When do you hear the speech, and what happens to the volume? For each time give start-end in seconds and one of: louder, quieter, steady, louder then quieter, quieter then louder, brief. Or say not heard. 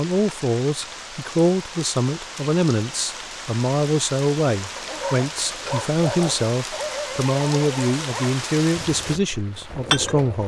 0.0-10.4 steady.